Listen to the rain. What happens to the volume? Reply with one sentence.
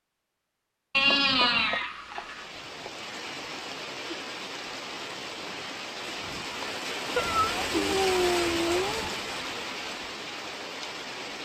The volume of the rain goes up, then down.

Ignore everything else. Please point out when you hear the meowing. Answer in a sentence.
You can hear the meowing from 0.9 to 2.9 s and from 7.2 to 9.1 s.